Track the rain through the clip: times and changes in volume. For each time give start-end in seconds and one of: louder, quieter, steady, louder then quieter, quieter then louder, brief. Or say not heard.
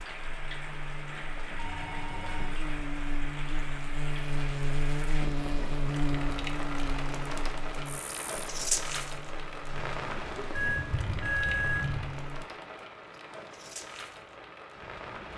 0.0-15.3 louder then quieter.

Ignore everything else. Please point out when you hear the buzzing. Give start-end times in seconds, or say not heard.
0.0-12.4.